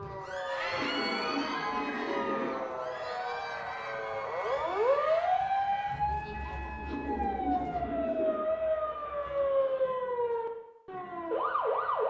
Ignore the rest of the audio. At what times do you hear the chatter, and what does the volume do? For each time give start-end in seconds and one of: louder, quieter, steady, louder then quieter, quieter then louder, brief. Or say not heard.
0.1-9.9 quieter.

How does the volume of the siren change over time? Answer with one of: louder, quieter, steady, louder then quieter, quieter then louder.
louder.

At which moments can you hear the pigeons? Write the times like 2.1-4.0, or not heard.
0.8-2.5, 6.8-8.5.